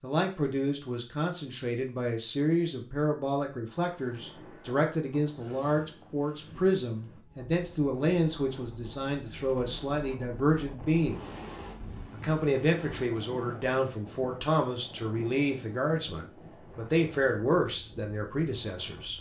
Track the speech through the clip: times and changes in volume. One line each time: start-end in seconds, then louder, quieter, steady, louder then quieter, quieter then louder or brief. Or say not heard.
0.0-11.2 steady
12.1-19.1 steady.